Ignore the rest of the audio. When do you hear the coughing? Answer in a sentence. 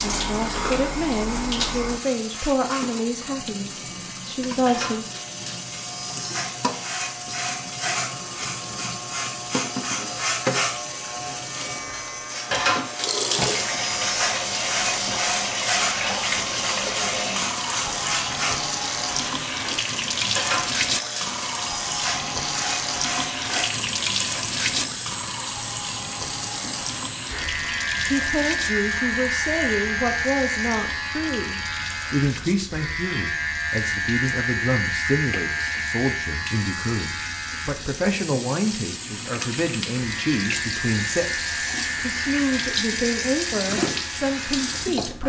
The coughing can be heard from 0.4 to 0.9 s.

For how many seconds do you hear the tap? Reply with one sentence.
You can hear the tap for 45 seconds altogether.